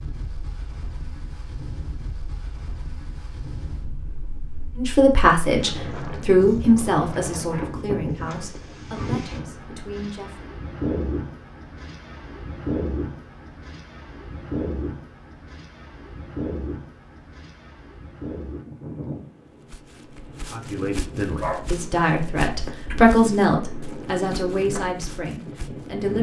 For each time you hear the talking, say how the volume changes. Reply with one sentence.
You can hear the talking from 4.8 to 10.5 s, getting quieter; and from 20.5 to 26.1 s, getting louder then quieter.